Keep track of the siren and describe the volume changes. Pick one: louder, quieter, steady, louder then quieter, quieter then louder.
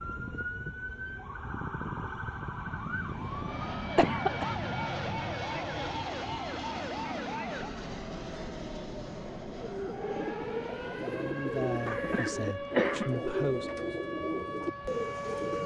steady.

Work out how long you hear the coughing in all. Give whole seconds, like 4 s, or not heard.
2 s.